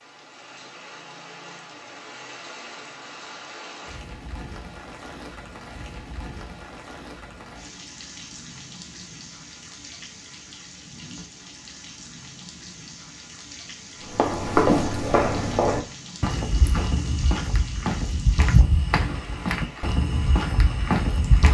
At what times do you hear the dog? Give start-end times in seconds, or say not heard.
not heard.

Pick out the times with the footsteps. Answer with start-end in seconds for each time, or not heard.
14.1-21.4.